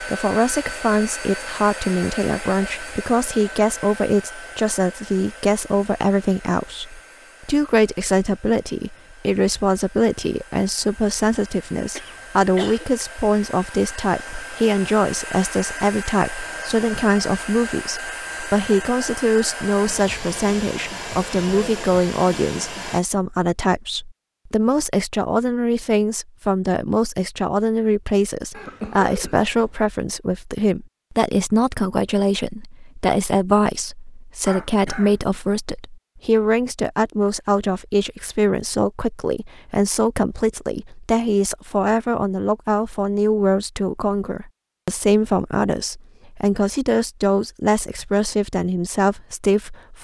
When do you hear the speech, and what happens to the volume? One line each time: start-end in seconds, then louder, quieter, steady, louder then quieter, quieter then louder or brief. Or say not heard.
0.1-49.9 steady.